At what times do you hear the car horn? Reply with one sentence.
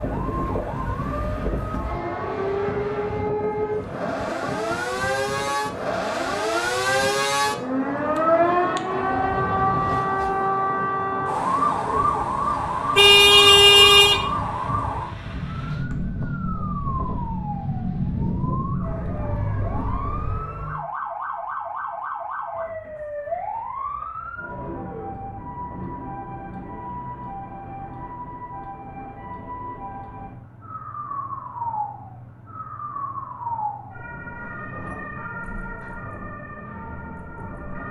You can hear the car horn from 12.9 to 14.2 s.